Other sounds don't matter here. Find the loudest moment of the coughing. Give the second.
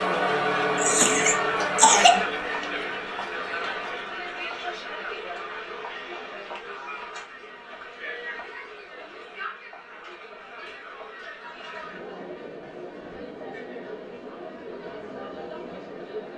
2 s.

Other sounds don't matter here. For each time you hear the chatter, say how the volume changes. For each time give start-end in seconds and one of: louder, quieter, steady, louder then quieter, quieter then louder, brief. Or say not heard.
0.0-16.3 quieter.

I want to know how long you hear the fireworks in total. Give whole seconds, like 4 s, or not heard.
not heard.